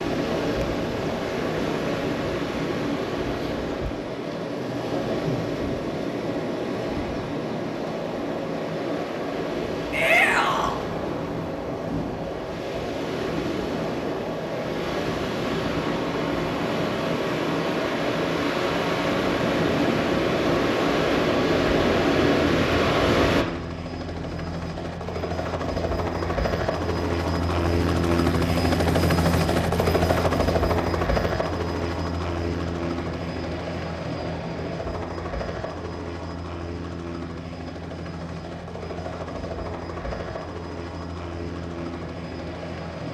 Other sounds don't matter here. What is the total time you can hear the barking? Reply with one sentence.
You can't hear the barking here.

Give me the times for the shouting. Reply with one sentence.
The shouting can be heard from 9.9 to 10.8 s.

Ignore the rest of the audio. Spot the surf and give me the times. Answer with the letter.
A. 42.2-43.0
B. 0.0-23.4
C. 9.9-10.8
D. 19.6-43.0
B.